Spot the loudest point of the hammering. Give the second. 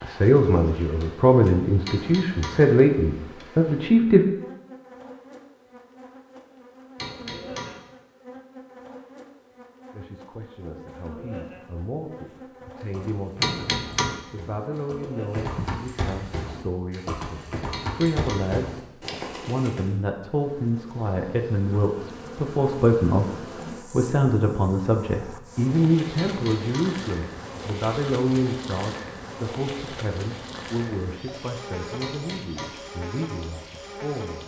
14 s.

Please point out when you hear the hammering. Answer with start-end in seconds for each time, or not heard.
1.9-2.6, 7.0-7.8, 13.4-14.2, 17.7-18.5, 26.1-26.9, 32.0-32.8.